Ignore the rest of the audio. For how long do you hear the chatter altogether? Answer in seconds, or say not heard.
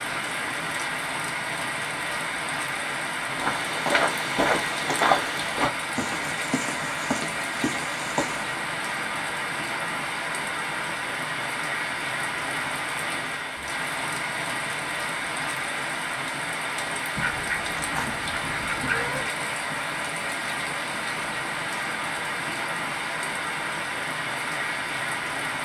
not heard.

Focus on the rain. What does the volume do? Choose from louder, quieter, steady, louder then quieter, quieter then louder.
steady.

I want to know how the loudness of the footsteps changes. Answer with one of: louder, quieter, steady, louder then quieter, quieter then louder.
quieter.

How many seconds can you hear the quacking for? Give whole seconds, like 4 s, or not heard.
2 s.